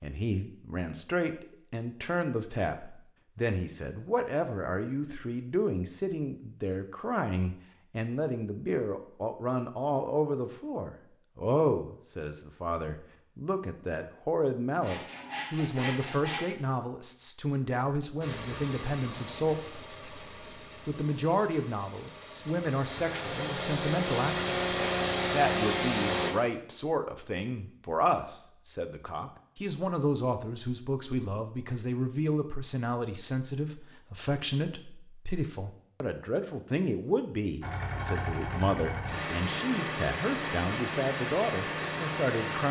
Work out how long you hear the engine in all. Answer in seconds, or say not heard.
13 s.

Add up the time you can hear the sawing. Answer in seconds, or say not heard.
2 s.